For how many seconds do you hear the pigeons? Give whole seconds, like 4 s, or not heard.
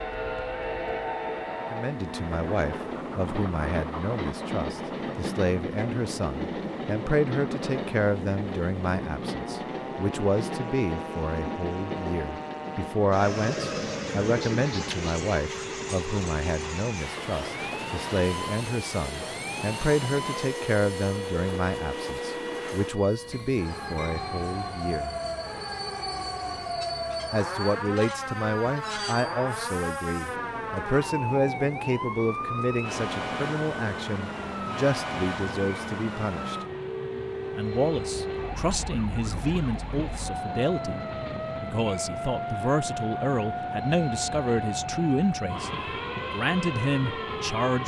2 s.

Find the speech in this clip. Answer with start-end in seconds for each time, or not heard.
1.6-25.1, 27.3-36.6, 37.5-41.0, 41.6-45.7, 46.3-47.8.